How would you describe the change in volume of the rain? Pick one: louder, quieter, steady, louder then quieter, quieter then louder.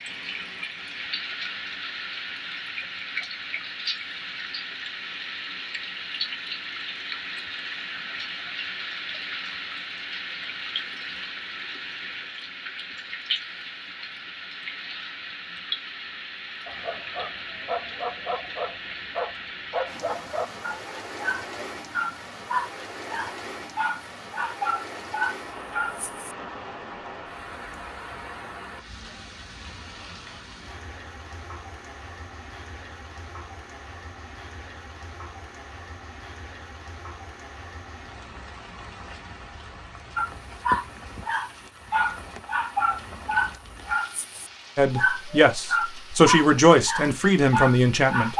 quieter.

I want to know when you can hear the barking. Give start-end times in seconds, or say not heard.
16.6-26.4, 40.1-48.3.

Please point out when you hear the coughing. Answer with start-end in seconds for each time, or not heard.
not heard.